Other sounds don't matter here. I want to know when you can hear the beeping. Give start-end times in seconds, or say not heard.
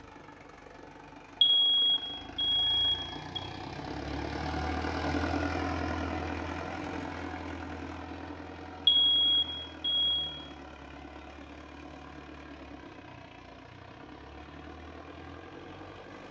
1.4-3.4, 8.8-10.1.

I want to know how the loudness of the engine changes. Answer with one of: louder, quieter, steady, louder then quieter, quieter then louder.
louder then quieter.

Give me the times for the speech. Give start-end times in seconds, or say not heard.
not heard.